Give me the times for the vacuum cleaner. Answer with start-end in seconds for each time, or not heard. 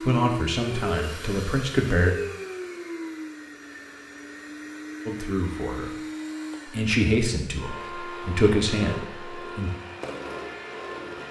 0.0-11.2.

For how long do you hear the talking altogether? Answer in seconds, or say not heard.
6 s.